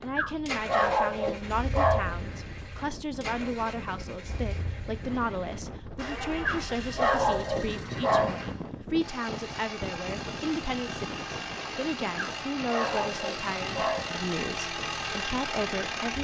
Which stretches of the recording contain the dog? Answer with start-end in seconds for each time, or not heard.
0.1-2.1, 6.5-8.4, 12.2-14.2.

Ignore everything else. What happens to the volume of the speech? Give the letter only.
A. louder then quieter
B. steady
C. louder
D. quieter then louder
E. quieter
B.